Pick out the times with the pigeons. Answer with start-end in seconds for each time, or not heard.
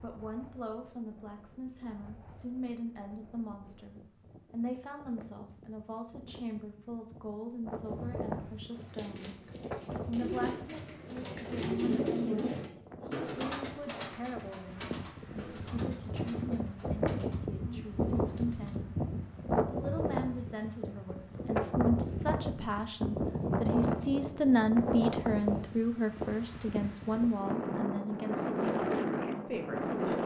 8.7-18.9.